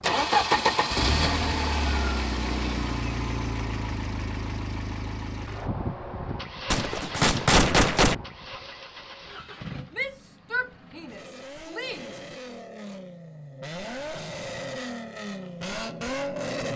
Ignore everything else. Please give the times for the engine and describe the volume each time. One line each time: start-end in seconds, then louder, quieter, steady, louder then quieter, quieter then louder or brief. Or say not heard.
0.0-16.7 quieter then louder.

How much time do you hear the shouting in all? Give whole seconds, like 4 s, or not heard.
2 s.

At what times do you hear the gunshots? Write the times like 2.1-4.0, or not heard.
6.7-8.2.